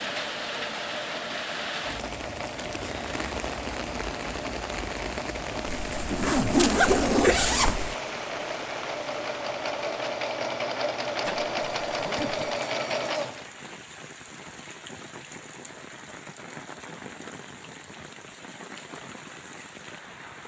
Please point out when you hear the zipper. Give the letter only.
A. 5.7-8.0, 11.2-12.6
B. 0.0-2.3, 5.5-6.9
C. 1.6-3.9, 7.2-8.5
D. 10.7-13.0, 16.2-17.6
A.